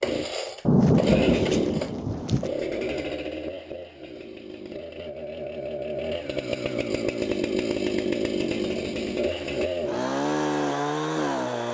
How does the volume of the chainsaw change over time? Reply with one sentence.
The volume of the chainsaw goes down, then up.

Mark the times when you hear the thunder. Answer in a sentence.
The thunder can be heard from 0.7 to 2.5 s.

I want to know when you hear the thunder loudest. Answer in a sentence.
The volume of the thunder peaks at 1 second.